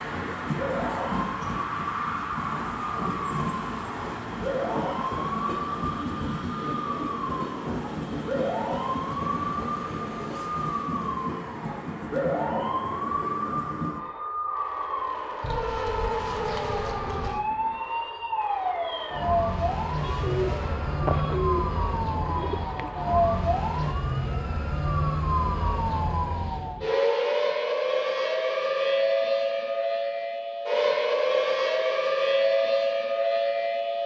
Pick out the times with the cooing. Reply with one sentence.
You can hear the cooing from 20.1 to 22.9 s.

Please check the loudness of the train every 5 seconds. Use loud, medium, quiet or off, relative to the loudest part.
loud, loud, loud, medium, medium, off, off.